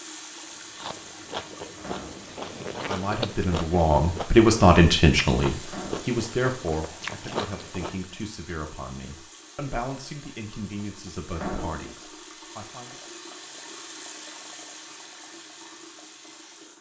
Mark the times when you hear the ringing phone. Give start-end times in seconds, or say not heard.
not heard.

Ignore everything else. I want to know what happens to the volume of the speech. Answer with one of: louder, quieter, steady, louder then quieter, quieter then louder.
quieter.